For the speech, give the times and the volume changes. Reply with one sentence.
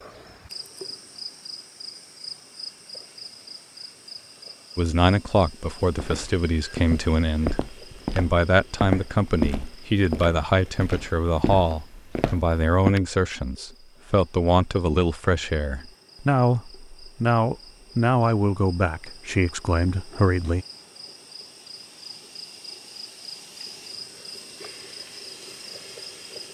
You can hear the speech from 4.8 to 20.6 s, at a steady volume.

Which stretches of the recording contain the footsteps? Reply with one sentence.
You can hear the footsteps from 5.8 to 12.9 s.